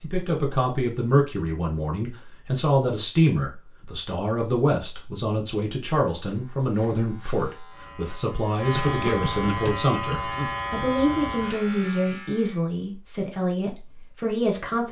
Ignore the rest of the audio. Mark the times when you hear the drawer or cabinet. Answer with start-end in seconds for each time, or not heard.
not heard.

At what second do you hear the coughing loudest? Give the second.
9 s.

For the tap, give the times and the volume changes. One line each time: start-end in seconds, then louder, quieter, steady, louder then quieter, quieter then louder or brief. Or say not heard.
not heard.